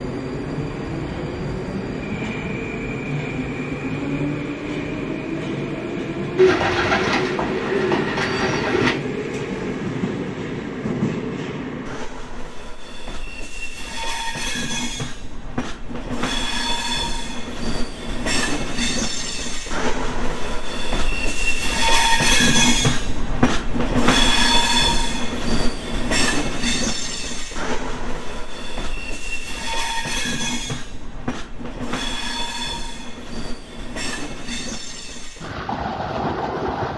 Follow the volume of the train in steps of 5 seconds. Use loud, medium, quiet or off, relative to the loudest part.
medium, medium, medium, medium, loud, medium, medium, medium.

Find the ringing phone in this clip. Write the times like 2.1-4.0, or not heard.
not heard.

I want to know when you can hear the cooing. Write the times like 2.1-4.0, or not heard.
6.3-8.9.